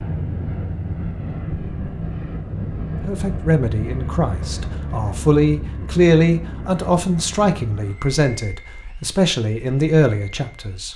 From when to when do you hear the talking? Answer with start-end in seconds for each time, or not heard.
3.0-10.9.